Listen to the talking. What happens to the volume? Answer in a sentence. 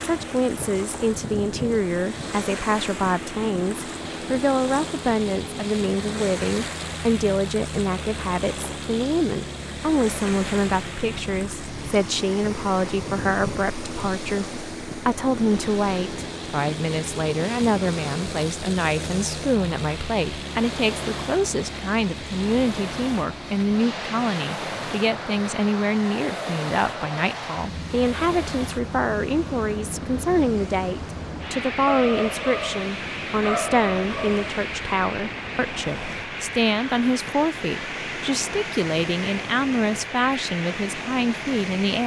The loudness of the talking stays about the same.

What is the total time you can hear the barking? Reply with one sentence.
You can hear the barking for 3 seconds altogether.